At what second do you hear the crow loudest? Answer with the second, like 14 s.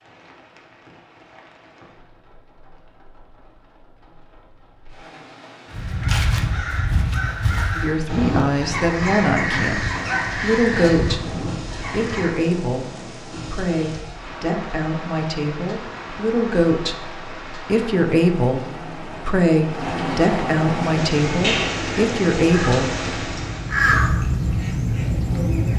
24 s.